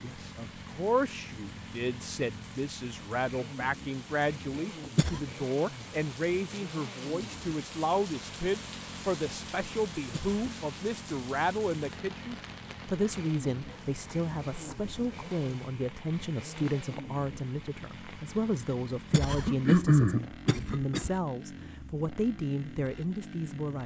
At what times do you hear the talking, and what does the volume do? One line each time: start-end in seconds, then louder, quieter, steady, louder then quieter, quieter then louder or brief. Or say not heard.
0.0-23.8 steady.